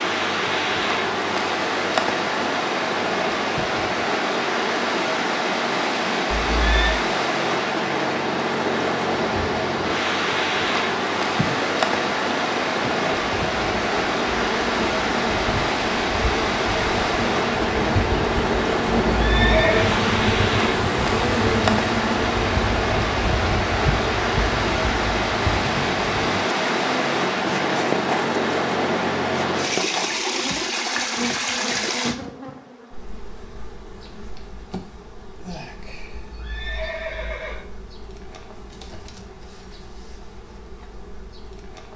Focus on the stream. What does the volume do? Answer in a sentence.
The loudness of the stream stays about the same.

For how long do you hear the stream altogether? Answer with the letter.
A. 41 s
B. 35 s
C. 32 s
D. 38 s
C.